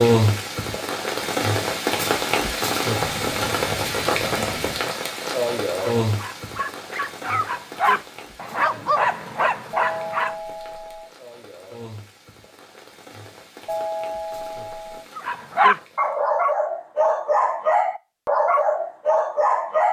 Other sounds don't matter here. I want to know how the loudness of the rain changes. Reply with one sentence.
The loudness of the rain goes down.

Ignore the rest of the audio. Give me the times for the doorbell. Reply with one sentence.
The doorbell can be heard from 2.9 to 4.9 s, from 9.7 to 11.1 s and from 13.7 to 15.1 s.